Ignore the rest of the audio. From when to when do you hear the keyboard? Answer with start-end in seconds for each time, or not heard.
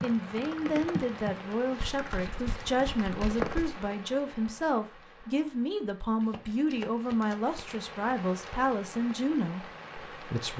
0.0-3.6.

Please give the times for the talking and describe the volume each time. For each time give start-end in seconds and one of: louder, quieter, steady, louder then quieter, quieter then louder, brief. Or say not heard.
0.0-10.5 steady.